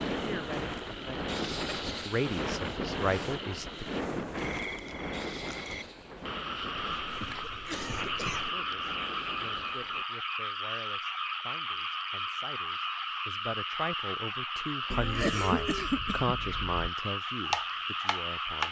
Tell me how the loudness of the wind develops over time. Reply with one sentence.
The volume of the wind goes down.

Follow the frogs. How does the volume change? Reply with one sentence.
The loudness of the frogs goes up.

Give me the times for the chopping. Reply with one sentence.
You can hear the chopping from 17.4 to 18.6 s.